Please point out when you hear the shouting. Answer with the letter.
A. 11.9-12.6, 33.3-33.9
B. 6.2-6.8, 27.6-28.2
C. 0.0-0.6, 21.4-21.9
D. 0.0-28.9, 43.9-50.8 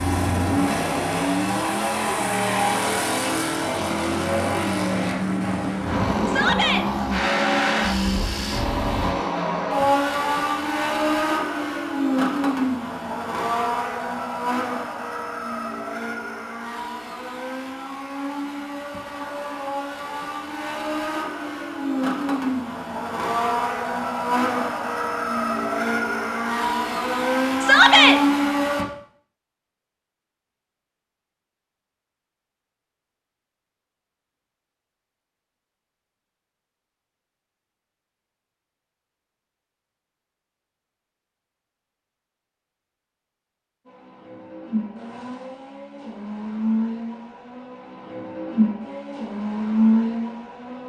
B.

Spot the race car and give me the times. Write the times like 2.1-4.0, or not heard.
0.0-28.9, 43.9-50.8.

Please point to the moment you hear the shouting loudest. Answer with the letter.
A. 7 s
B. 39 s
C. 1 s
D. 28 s
D.